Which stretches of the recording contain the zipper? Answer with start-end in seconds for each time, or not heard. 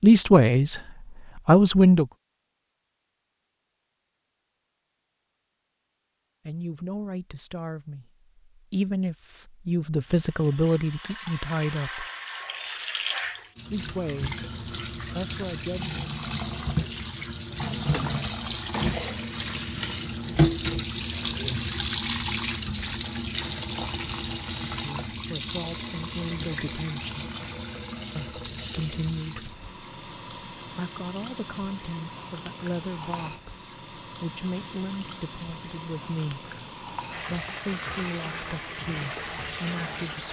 not heard.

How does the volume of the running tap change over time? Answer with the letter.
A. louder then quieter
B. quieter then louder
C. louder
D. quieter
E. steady
A.